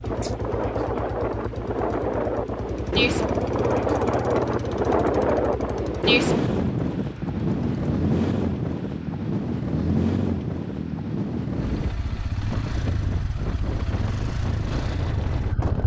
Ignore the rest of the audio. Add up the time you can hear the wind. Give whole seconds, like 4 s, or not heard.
16 s.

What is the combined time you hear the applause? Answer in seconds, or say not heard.
not heard.